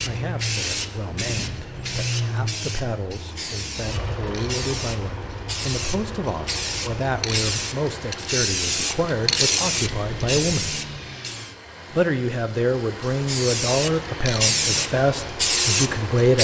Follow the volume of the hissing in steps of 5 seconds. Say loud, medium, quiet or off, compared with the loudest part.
medium, loud, loud, loud.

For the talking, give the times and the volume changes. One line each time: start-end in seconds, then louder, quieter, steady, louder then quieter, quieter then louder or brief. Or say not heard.
0.0-10.8 louder
11.9-16.4 steady.